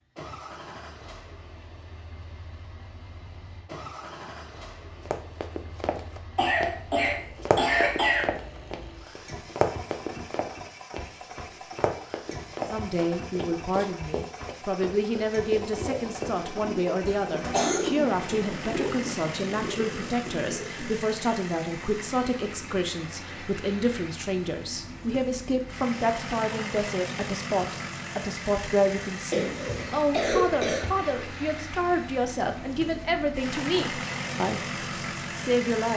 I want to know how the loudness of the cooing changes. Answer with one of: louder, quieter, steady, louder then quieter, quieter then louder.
louder then quieter.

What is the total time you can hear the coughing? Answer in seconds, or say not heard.
4 s.